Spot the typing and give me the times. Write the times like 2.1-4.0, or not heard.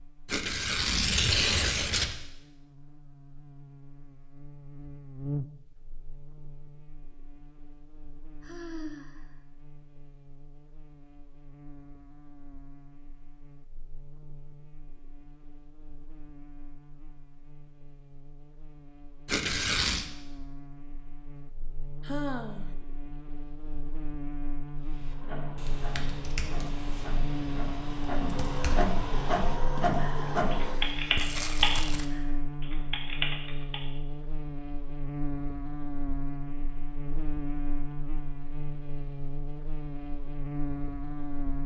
24.8-33.9.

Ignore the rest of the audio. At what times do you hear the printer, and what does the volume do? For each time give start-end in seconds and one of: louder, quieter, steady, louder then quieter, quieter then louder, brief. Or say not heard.
25.1-30.9 louder.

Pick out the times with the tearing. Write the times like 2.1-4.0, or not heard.
0.2-2.1, 19.2-20.1, 31.1-32.0.